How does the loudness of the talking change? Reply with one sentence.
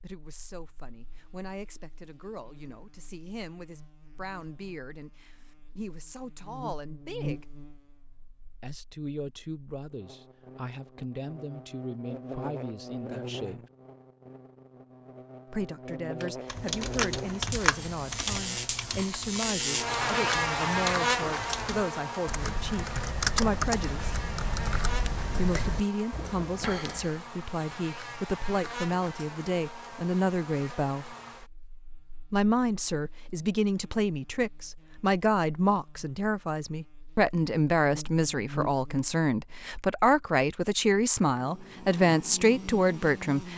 The loudness of the talking goes up.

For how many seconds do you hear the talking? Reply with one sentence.
You can hear the talking for 38 seconds altogether.